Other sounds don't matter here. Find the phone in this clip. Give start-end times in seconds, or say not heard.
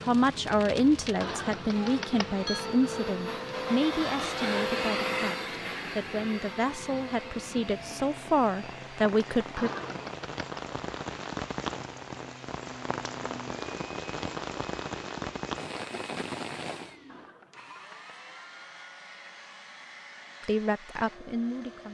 1.2-2.6, 9.6-10.6, 17.1-18.1.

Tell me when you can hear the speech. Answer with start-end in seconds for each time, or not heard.
0.1-9.7, 20.4-21.8.